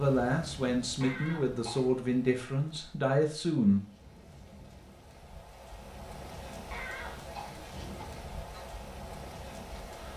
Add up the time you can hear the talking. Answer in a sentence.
The talking can be heard for 4 seconds in total.